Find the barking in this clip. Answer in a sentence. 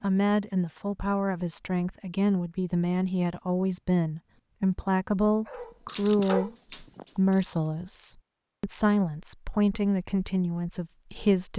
The barking can be heard from 5.3 to 7.8 s.